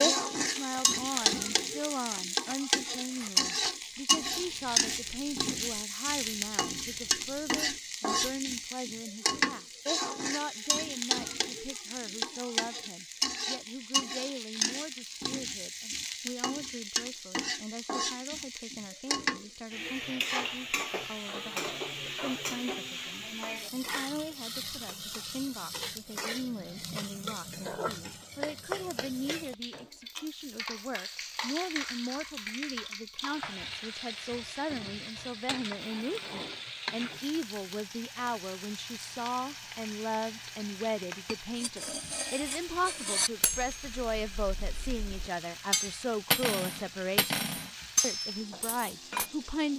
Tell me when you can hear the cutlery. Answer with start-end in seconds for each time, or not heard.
0.3-8.4, 41.2-49.2.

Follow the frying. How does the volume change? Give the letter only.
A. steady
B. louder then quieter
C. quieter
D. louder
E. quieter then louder
C.